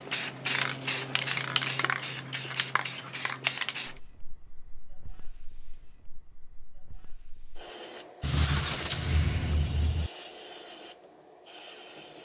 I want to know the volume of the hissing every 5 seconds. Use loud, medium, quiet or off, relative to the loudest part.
loud, quiet, quiet.